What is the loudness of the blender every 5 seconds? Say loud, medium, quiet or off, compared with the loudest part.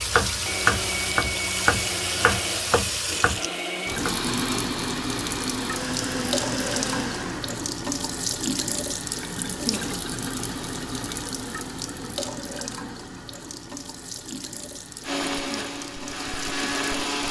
loud, loud, off, loud.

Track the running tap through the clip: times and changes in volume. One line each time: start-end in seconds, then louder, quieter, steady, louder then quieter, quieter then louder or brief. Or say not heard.
0.0-17.1 quieter.